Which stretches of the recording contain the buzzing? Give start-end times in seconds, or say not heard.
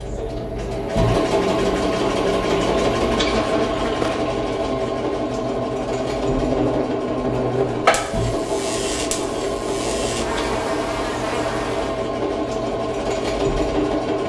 0.0-12.1.